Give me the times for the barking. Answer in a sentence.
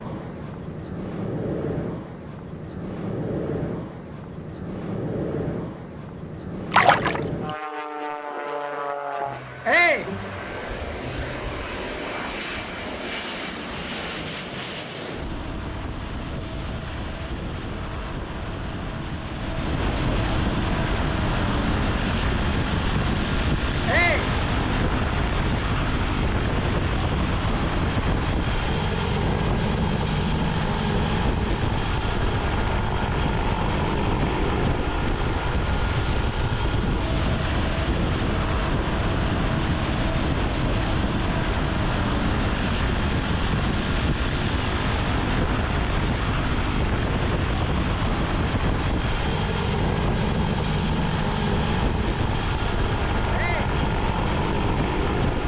You can't hear the barking here.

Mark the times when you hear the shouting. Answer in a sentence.
The shouting can be heard from 9.7 to 10.1 s, from 23.9 to 24.3 s and from 53.3 to 53.8 s.